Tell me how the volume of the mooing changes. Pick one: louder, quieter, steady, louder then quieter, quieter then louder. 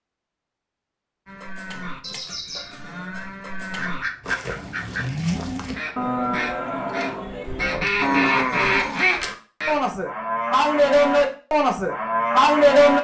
louder.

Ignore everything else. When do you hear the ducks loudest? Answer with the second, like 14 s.
9 s.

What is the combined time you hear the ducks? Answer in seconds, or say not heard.
6 s.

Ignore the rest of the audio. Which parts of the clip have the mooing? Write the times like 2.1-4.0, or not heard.
1.2-12.9.